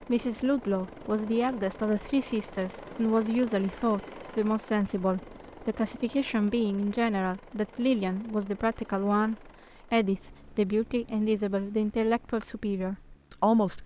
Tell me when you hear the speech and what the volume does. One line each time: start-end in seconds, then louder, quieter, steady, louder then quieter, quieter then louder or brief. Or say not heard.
0.0-13.8 steady.